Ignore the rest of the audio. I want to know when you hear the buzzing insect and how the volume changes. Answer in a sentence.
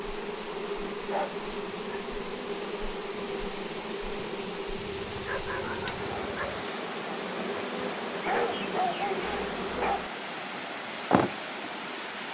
You can hear the buzzing insect from 0.0 to 12.1 s, at a steady volume.